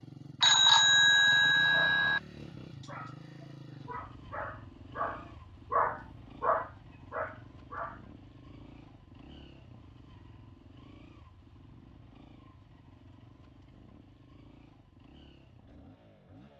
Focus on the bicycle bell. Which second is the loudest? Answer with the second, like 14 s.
1 s.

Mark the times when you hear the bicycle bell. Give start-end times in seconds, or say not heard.
0.4-2.2.